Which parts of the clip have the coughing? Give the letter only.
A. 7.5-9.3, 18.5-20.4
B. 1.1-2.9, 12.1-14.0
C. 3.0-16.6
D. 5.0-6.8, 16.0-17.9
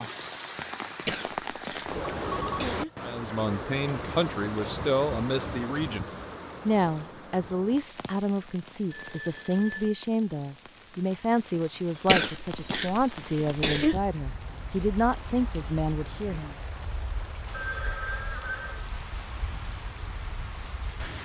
B.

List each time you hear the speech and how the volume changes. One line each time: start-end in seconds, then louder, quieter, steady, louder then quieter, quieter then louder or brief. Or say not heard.
3.0-16.6 steady.